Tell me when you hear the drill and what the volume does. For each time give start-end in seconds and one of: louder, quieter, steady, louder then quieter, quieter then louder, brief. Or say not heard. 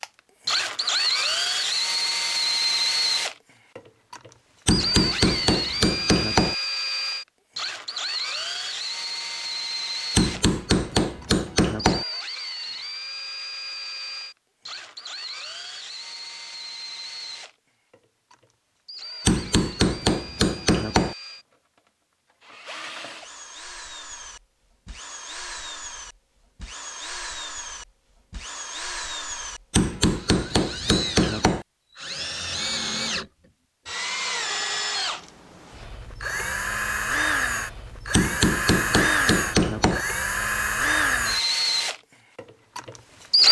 0.0-43.4 quieter then louder.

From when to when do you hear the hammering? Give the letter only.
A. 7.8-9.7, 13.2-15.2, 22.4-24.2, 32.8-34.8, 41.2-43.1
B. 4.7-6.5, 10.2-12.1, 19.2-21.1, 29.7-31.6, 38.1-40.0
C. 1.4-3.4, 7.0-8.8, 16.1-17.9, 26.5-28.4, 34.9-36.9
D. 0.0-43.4
B.